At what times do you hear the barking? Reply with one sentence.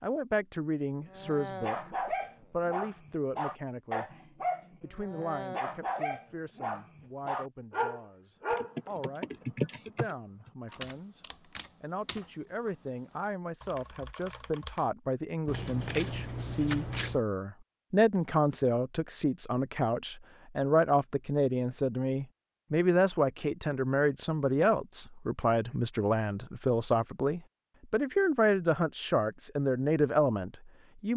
The barking can be heard from 1.1 to 8.9 s.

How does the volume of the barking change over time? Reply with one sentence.
The volume of the barking stays about the same.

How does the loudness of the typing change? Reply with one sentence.
The loudness of the typing goes down, then up.